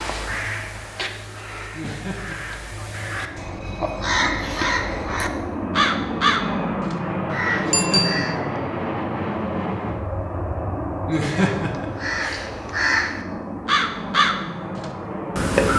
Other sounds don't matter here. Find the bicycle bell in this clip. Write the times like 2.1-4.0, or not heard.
7.7-8.3.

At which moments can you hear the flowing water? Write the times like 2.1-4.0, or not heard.
not heard.